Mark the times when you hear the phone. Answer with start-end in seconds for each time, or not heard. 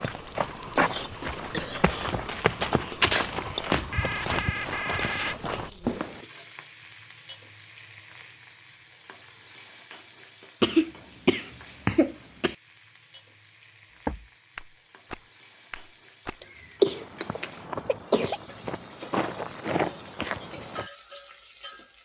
3.9-5.4.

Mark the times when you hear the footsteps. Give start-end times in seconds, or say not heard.
0.0-6.2, 14.1-20.9.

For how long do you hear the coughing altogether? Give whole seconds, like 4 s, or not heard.
5 s.